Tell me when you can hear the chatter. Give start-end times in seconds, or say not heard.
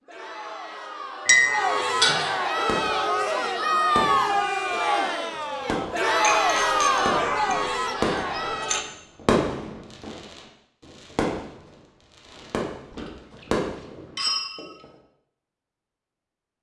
0.0-8.8.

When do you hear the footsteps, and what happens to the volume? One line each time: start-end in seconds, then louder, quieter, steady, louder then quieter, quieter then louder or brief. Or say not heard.
not heard.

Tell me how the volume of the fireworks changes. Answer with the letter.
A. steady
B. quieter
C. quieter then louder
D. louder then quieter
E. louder
D.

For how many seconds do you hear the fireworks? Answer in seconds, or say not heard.
11 s.